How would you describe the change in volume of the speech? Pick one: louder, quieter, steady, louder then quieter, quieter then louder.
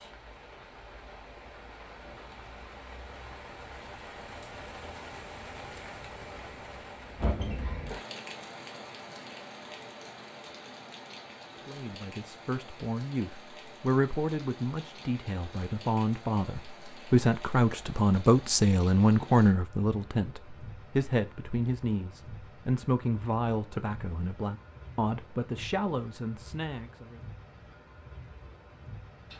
louder then quieter.